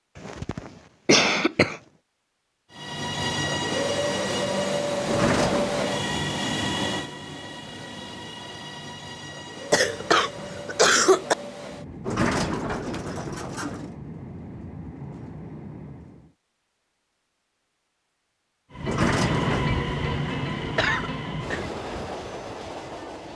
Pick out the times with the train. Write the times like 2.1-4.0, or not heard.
2.7-16.4, 18.7-23.3.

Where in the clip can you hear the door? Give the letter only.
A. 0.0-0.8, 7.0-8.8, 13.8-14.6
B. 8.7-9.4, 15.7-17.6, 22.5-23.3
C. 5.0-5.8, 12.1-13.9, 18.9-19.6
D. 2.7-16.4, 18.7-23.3
C.